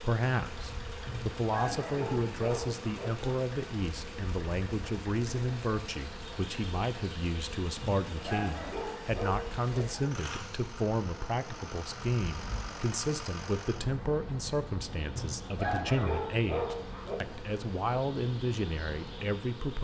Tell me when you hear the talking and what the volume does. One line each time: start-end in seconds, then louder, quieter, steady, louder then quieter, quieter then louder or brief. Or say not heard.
0.0-19.7 steady.